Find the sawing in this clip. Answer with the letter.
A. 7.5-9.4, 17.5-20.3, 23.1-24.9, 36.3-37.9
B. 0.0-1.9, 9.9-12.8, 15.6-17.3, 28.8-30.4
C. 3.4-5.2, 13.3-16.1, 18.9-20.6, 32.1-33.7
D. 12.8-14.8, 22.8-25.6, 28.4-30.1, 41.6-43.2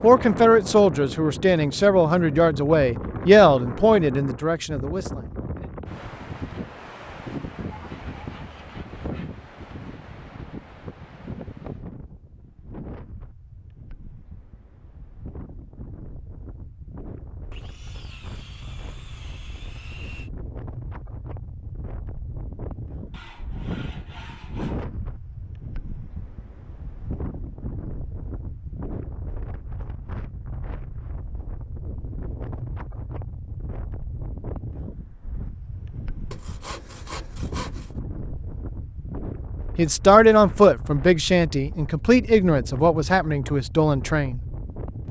A.